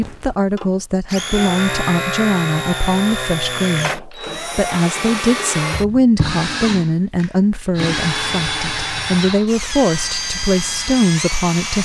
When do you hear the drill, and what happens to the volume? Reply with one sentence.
The drill can be heard from 0.0 to 11.7 s, at a steady volume.